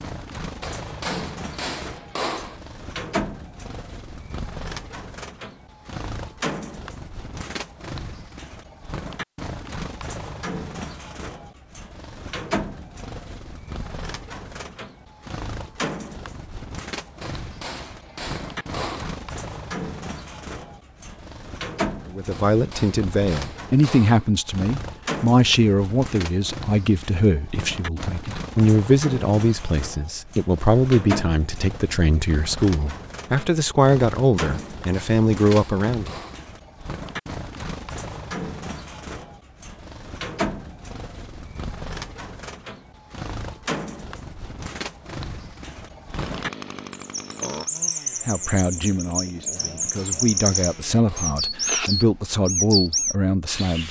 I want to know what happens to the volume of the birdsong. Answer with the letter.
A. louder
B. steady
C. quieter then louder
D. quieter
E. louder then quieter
A.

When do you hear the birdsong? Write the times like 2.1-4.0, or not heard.
0.0-53.8.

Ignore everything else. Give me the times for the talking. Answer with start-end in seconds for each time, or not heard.
22.1-36.1, 48.2-53.8.